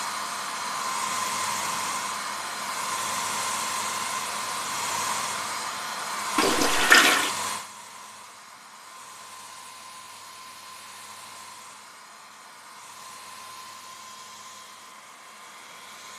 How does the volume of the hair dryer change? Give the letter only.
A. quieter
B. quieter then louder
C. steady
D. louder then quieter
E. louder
A.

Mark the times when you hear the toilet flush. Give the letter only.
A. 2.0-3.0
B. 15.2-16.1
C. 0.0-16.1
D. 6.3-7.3
D.